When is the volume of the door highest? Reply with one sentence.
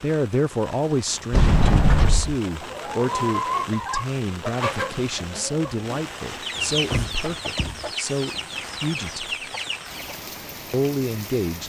The loudest moment of the door is at 2 seconds.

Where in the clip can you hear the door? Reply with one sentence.
The door can be heard from 1.3 to 2.4 s and from 6.7 to 7.9 s.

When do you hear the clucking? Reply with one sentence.
You can hear the clucking from 2.5 to 10.2 s.